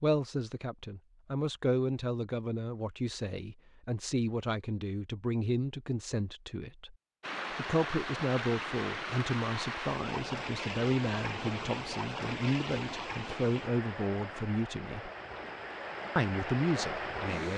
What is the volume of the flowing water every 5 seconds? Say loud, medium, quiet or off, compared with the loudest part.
off, loud, loud, loud.